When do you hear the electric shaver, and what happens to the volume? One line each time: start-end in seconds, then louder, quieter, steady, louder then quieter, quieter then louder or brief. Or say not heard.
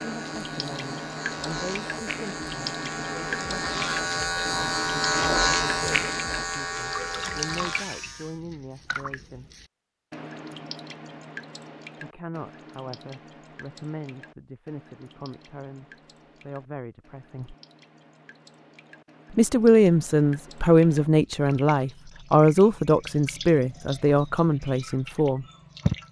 0.0-8.4 louder then quieter.